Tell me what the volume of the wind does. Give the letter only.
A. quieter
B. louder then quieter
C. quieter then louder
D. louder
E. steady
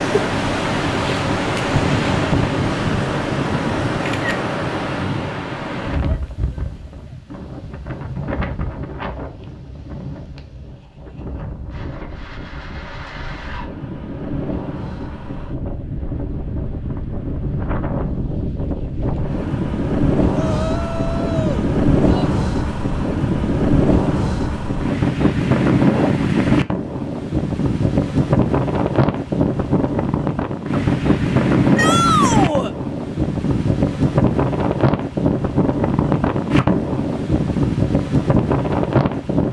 C.